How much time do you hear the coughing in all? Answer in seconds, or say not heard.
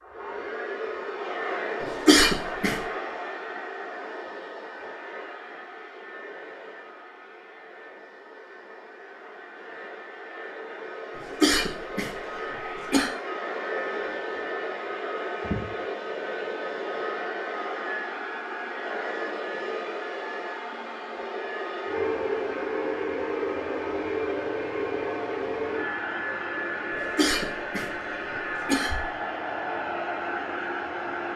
5 s.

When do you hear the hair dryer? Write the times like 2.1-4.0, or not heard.
0.0-31.3.